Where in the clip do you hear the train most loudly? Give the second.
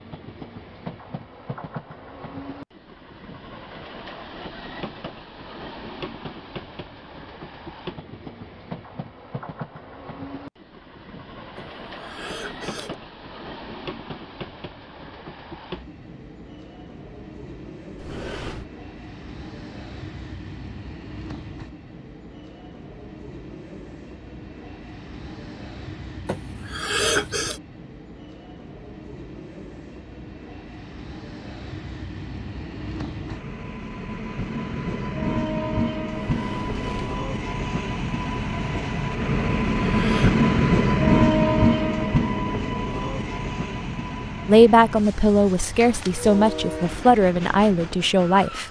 41 s.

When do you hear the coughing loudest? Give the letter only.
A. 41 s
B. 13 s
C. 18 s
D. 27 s
D.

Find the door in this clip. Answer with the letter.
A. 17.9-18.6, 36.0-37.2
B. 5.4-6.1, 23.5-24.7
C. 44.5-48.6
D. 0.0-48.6
A.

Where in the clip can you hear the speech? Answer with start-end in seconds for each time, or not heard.
44.5-48.6.